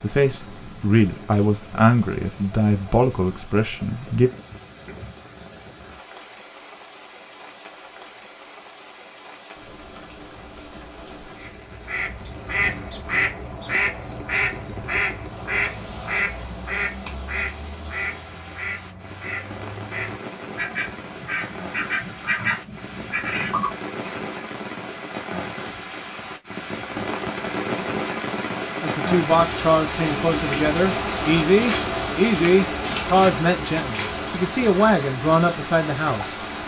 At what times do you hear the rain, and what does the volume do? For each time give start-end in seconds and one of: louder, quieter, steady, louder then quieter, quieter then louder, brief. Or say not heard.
0.0-36.6 louder.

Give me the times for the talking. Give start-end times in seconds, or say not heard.
0.0-4.3, 28.8-36.3.